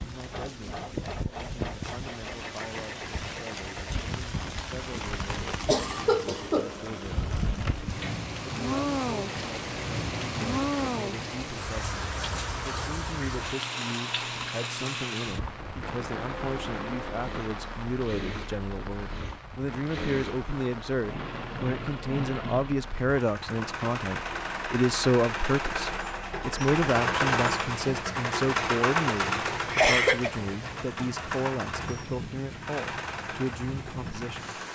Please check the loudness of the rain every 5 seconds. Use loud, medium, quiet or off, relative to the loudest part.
medium, loud, loud, medium, medium, medium, medium.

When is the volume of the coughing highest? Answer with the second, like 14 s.
30 s.